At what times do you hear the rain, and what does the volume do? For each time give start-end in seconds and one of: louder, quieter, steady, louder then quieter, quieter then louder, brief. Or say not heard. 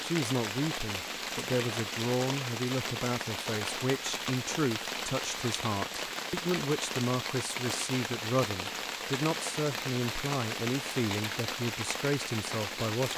0.0-13.1 steady.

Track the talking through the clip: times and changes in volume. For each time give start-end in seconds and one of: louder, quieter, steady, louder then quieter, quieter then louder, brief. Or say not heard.
0.0-13.1 steady.